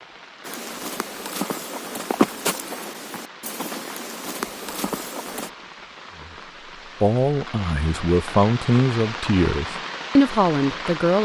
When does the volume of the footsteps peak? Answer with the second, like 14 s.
2 s.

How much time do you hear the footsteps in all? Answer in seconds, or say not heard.
5 s.